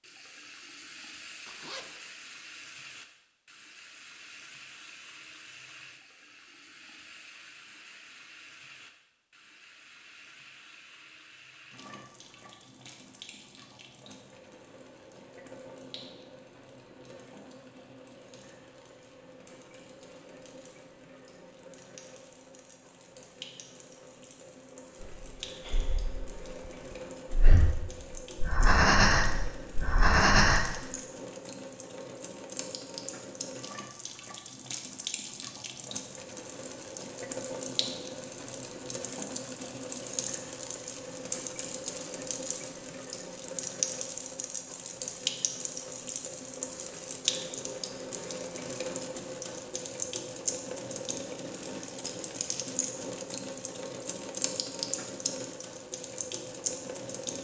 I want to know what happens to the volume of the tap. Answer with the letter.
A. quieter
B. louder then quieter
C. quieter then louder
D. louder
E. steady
D.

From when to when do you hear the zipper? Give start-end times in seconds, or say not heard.
1.4-2.0.